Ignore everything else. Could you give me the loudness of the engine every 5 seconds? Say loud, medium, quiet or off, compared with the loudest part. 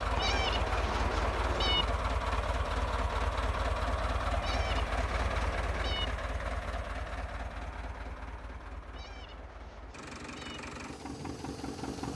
loud, medium, medium.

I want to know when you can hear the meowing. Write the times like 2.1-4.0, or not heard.
0.1-1.9, 4.4-6.0, 8.9-10.6.